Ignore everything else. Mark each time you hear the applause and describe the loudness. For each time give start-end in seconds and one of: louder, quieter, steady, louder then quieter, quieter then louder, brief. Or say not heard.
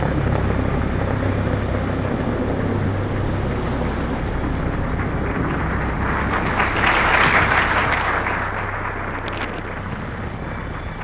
0.0-10.9 louder then quieter.